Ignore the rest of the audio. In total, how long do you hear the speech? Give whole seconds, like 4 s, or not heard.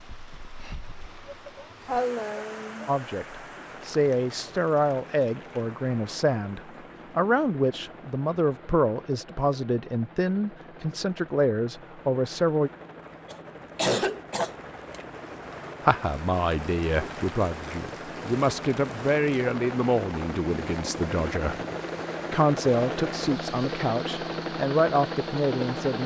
19 s.